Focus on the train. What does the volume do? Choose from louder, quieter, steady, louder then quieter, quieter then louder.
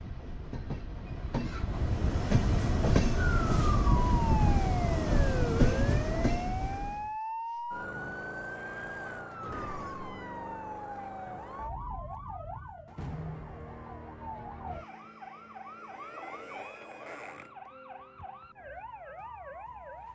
louder.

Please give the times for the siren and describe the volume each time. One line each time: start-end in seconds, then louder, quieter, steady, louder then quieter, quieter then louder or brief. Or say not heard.
3.4-20.1 quieter.